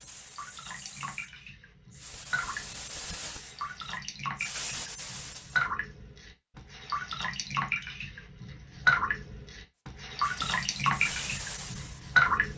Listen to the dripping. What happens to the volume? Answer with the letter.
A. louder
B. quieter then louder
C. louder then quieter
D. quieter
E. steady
A.